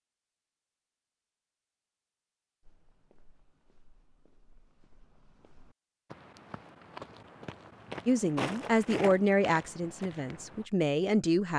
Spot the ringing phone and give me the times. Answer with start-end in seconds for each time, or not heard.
not heard.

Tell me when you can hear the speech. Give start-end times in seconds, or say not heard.
8.1-11.5.